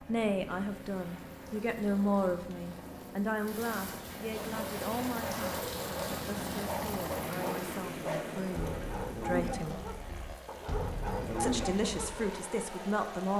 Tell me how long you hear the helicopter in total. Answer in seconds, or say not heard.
13 s.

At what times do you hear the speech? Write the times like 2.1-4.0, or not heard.
0.1-9.8, 11.4-13.3.